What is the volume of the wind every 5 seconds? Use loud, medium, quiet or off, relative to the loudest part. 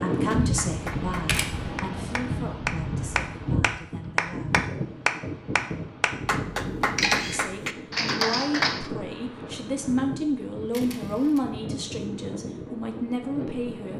loud, medium, medium.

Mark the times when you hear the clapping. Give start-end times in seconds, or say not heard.
0.3-8.9.